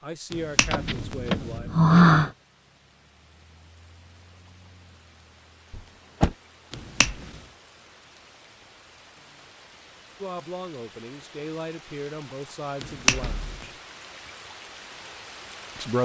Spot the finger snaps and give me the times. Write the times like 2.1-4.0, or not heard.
0.3-1.6, 6.7-7.4, 12.8-13.7.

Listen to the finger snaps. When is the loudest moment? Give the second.
13 s.